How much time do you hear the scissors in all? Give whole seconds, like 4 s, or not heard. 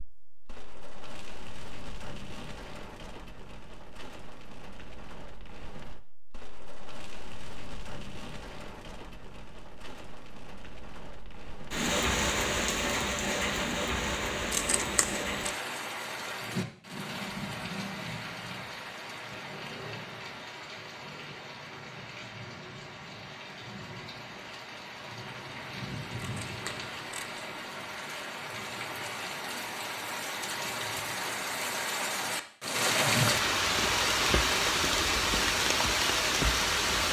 2 s.